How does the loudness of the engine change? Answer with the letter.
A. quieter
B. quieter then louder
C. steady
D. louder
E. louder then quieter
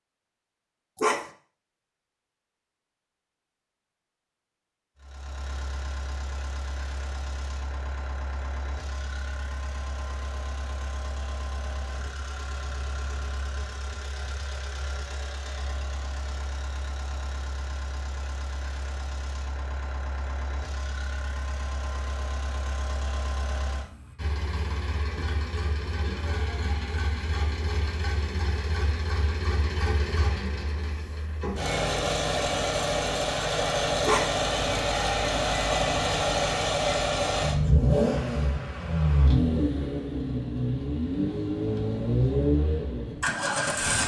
D.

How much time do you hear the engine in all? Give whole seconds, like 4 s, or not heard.
39 s.